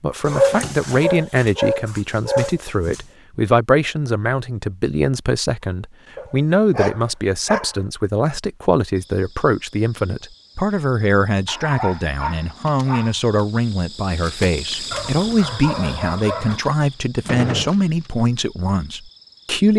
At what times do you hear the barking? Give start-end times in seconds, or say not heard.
0.2-3.0, 6.2-7.8, 11.4-13.2, 14.9-16.6.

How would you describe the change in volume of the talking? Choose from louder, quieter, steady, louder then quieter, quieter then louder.
steady.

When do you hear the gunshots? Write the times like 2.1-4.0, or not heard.
17.2-17.7.